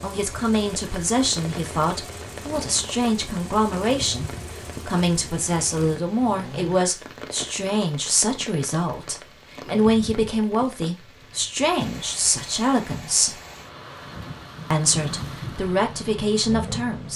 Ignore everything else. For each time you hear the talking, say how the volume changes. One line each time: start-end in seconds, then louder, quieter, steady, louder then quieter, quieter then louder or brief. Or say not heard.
0.0-13.4 steady
14.7-17.1 brief.